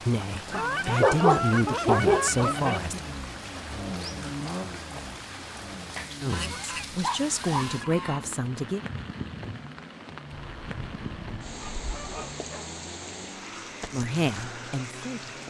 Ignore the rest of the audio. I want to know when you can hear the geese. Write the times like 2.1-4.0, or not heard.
0.5-3.0, 6.2-8.3, 10.3-12.4.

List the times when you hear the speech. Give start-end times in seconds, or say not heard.
0.0-3.0, 6.2-8.8, 13.9-15.3.